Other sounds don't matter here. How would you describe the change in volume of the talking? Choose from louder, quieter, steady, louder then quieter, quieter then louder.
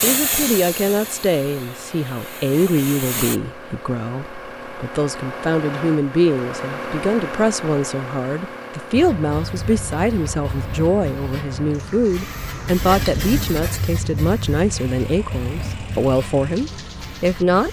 steady.